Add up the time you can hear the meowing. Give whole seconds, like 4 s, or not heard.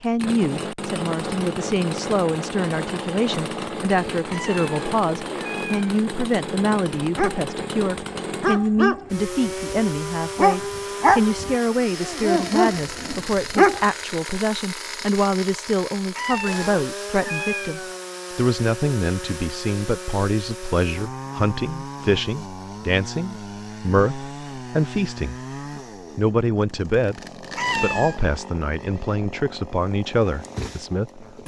4 s.